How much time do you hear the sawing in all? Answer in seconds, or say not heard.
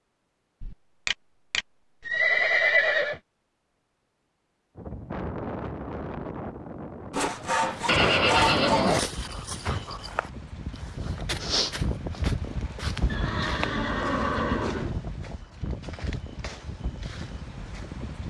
2 s.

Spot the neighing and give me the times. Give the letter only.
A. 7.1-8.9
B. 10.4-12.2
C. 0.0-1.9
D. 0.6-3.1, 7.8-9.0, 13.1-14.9
D.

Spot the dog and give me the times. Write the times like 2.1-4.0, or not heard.
not heard.